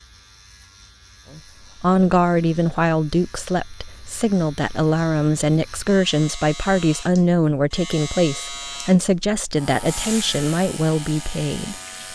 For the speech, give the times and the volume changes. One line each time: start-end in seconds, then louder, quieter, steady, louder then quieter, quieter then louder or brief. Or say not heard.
1.3-11.8 steady.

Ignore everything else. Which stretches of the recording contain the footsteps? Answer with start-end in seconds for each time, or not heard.
not heard.